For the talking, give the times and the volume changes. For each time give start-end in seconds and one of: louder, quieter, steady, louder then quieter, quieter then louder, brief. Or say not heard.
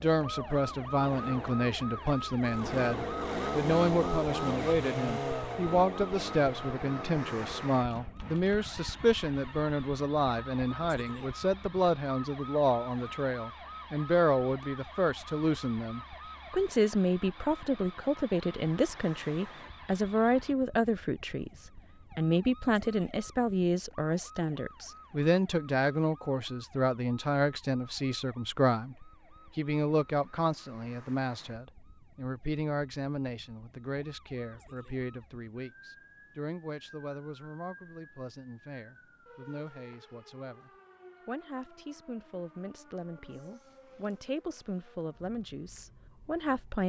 0.0-46.8 quieter.